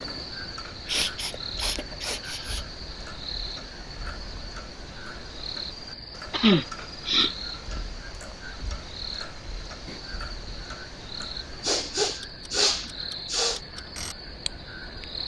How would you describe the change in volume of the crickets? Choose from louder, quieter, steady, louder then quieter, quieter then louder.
steady.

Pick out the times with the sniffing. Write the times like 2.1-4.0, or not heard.
0.8-2.6, 6.3-7.3, 11.2-13.6.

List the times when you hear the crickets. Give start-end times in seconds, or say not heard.
0.0-15.2.